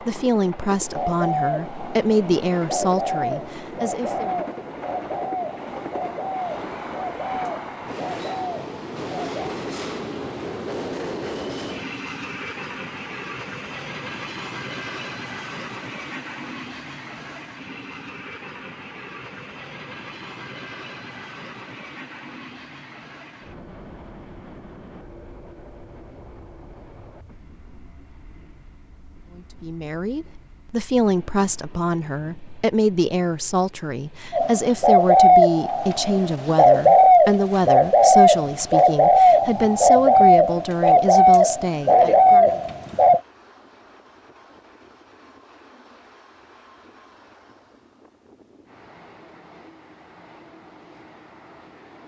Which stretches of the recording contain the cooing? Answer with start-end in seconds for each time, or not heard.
0.9-9.3, 34.3-43.2.